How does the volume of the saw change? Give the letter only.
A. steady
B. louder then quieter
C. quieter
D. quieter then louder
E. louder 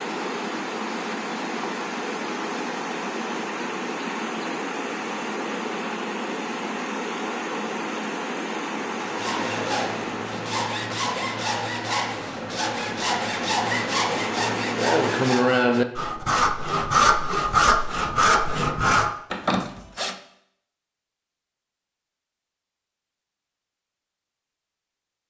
E.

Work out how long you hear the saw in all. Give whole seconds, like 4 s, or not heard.
11 s.